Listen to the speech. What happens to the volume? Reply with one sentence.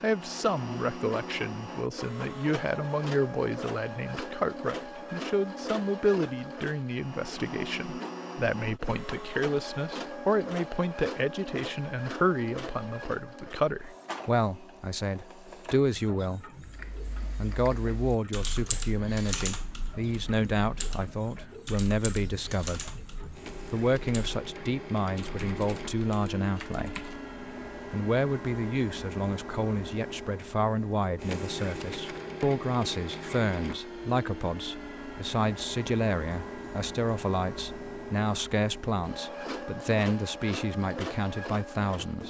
The loudness of the speech stays about the same.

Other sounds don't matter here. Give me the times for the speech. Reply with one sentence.
You can hear the speech from 0.0 to 16.4 s, from 17.4 to 27.1 s and from 27.9 to 42.2 s.